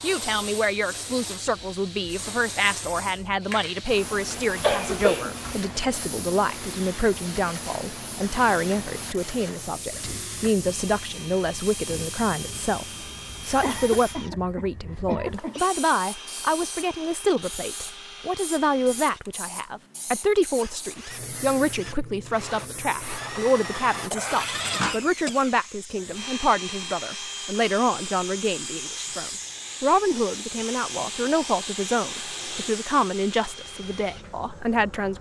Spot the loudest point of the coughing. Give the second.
5 s.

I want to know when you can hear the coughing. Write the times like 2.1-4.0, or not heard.
4.3-5.3, 13.6-15.7, 24.1-26.2.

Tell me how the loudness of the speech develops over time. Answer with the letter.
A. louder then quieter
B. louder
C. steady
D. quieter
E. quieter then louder
C.